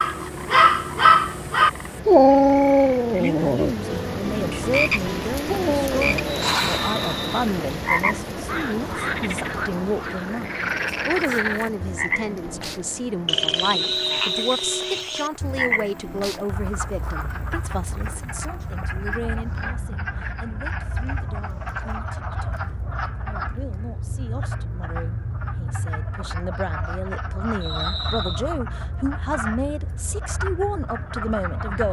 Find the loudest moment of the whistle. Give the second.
14 s.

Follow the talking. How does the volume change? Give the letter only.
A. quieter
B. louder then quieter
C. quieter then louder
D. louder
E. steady
C.